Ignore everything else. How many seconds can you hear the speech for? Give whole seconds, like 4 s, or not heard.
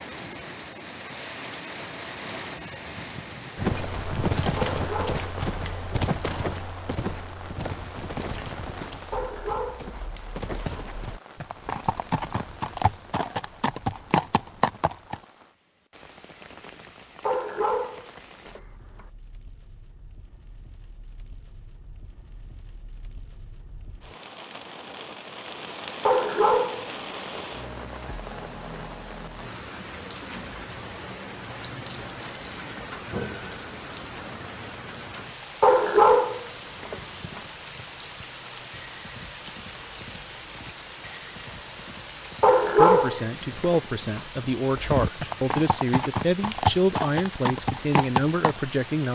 6 s.